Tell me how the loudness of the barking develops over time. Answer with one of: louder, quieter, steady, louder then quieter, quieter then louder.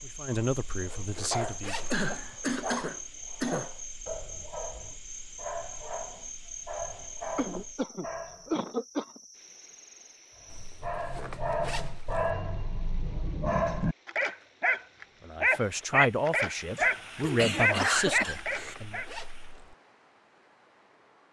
louder.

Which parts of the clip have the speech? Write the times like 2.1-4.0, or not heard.
0.0-1.9, 15.2-19.0.